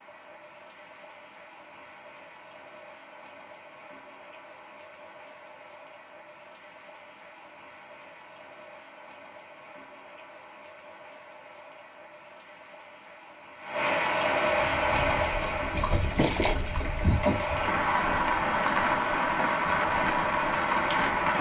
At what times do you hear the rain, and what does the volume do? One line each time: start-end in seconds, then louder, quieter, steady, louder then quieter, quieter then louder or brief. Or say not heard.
0.0-21.3 louder.